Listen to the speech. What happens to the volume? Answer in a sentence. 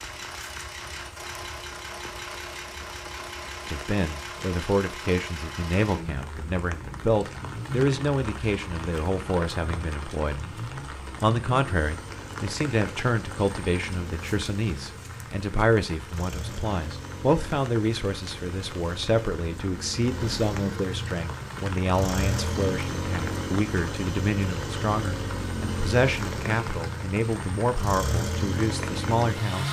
The volume of the speech stays about the same.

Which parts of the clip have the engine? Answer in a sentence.
The engine can be heard from 0.0 to 29.6 s.